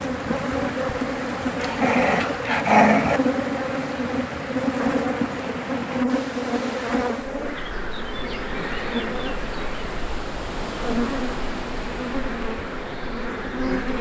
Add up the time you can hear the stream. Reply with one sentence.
The stream can be heard for 14 seconds in total.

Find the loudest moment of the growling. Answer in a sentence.
The volume of the growling peaks at 3 seconds.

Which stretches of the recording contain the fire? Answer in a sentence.
The fire can't be heard in this clip.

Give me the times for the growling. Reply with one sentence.
The growling can be heard from 1.6 to 3.2 s.